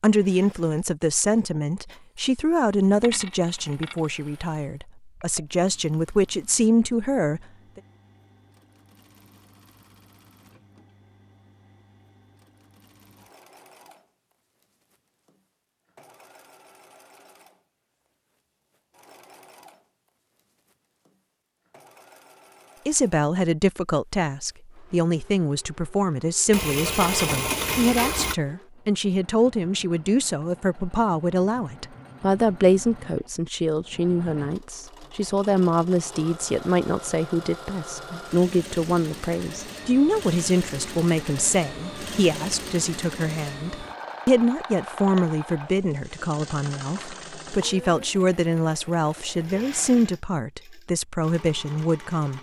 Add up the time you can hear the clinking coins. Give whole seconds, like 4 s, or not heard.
4 s.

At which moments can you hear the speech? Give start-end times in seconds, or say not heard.
0.0-7.8, 22.9-52.3.